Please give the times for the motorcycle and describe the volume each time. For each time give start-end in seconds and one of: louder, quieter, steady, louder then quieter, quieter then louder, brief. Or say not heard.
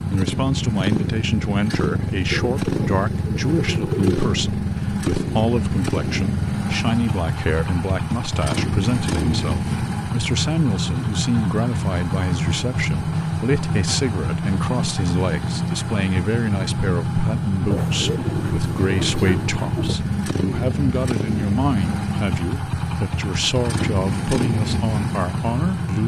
0.0-26.0 steady.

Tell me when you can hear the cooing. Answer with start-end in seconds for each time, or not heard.
2.2-4.2, 17.7-19.9.